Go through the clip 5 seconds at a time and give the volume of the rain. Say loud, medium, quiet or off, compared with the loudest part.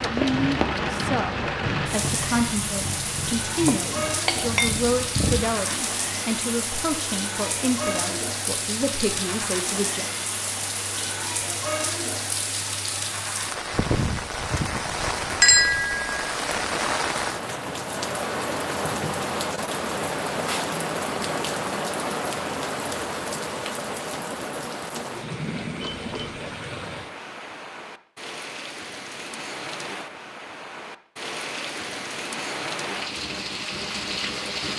loud, loud, loud, loud, loud, medium, loud.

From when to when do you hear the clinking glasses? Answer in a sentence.
You can hear the clinking glasses from 3.6 to 4.8 s, from 15.4 to 16.2 s and from 25.8 to 26.4 s.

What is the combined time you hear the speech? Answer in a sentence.
You can hear the speech for 10 seconds altogether.